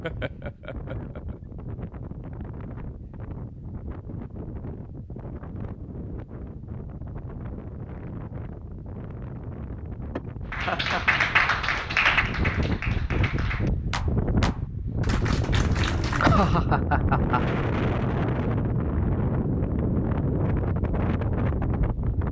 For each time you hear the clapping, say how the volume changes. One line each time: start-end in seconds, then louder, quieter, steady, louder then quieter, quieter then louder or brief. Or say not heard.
10.5-16.6 quieter.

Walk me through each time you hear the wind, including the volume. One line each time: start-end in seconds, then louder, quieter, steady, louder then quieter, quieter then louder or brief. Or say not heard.
0.0-22.2 louder.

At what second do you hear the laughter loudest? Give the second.
16 s.